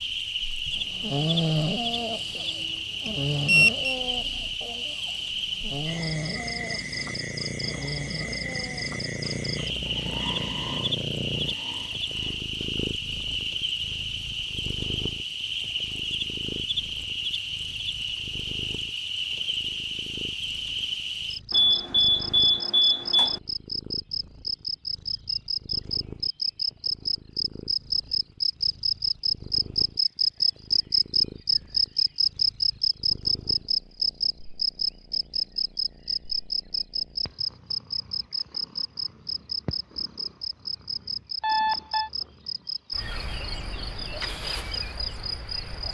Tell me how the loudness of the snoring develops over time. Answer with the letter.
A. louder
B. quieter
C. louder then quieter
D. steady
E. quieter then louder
B.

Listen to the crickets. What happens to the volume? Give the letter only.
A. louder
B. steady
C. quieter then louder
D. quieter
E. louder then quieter
E.